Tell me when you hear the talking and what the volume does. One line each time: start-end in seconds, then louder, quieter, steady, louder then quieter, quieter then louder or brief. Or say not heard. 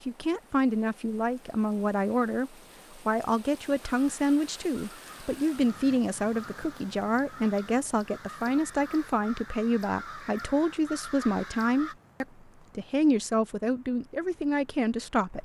0.1-15.3 steady.